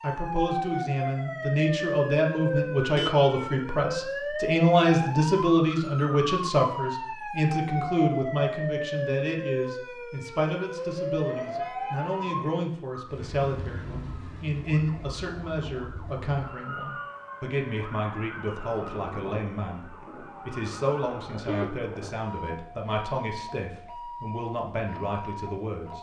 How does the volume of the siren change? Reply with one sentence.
The volume of the siren goes down.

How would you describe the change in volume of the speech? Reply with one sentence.
The volume of the speech goes down.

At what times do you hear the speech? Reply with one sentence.
The speech can be heard from 0.0 to 25.9 s.